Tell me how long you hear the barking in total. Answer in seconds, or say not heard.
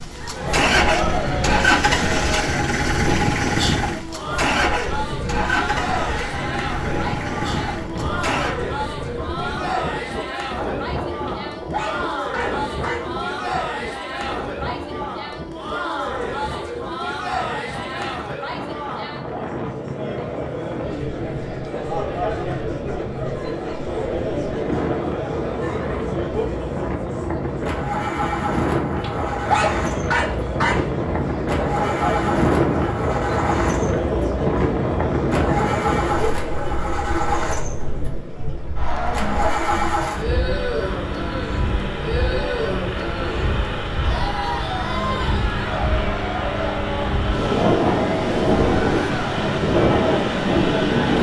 4 s.